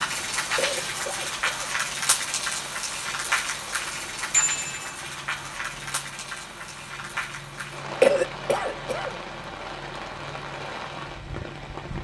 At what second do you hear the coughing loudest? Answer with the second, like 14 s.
8 s.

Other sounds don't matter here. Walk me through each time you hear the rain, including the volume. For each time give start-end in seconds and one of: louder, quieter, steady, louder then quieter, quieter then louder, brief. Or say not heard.
0.0-11.9 quieter.